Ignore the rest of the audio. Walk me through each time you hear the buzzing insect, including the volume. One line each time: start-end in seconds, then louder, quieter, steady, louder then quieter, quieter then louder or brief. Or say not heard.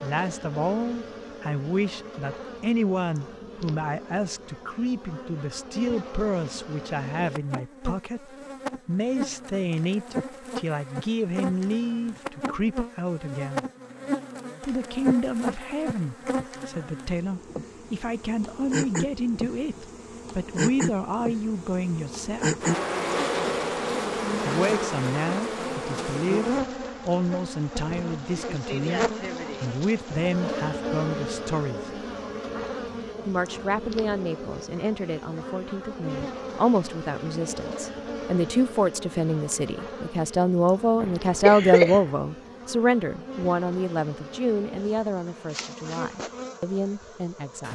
0.0-47.6 louder then quieter.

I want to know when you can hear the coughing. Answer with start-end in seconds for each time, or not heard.
41.0-42.1.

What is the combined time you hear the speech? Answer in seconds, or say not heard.
43 s.